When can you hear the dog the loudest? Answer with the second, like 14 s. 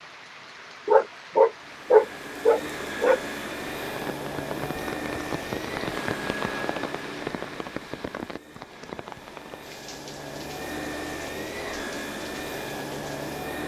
2 s.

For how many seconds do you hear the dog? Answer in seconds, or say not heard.
2 s.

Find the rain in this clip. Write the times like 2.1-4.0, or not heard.
0.0-13.6.